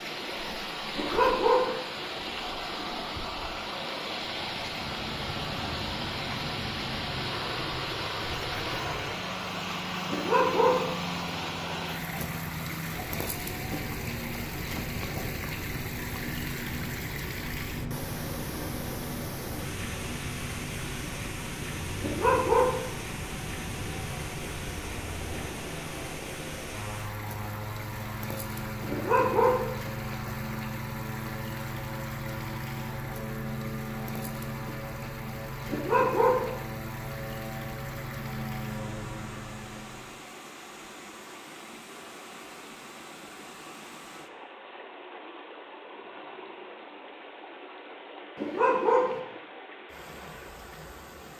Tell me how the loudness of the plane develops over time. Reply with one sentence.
The volume of the plane stays about the same.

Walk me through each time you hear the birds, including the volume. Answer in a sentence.
The birds can't be heard in this clip.